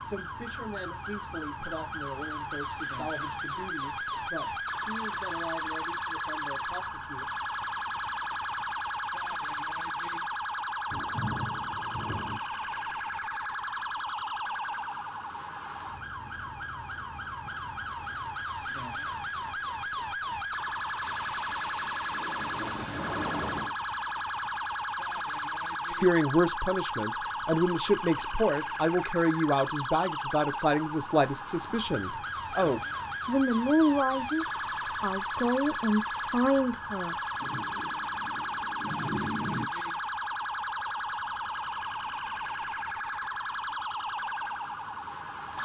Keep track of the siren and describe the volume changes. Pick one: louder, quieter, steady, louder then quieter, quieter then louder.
steady.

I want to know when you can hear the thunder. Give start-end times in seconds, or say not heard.
10.9-12.4, 21.0-23.8, 37.4-39.6.